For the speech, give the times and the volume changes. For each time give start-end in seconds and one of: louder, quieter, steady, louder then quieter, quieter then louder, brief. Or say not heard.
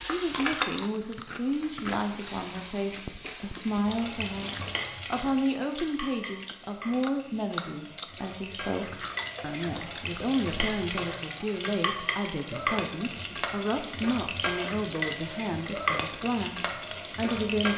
0.0-17.7 steady.